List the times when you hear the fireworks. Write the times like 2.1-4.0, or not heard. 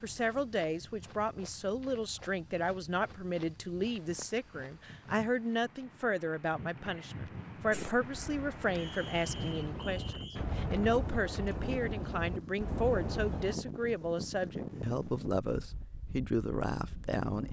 7.7-13.6.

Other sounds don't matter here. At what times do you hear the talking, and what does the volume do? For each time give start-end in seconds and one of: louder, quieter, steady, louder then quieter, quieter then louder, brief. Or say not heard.
0.0-17.4 steady.